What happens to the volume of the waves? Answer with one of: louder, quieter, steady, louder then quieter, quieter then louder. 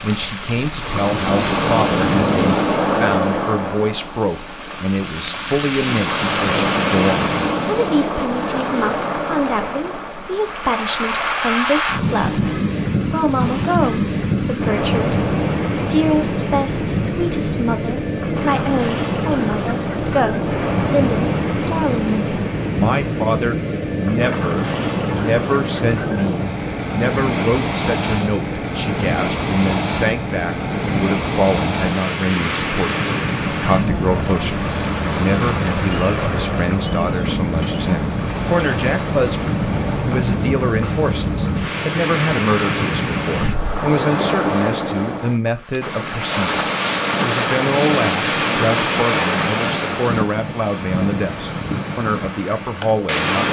steady.